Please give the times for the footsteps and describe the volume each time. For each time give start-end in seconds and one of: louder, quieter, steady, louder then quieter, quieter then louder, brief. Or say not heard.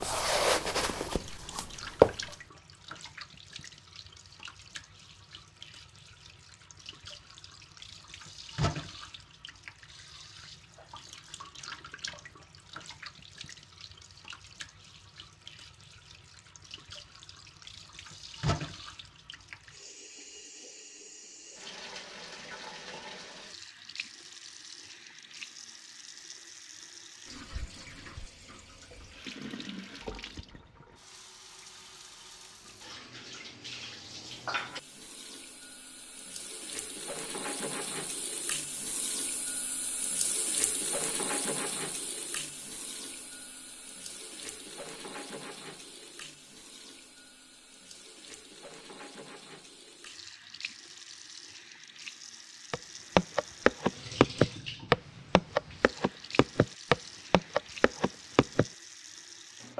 0.0-2.4 brief
52.7-58.6 quieter.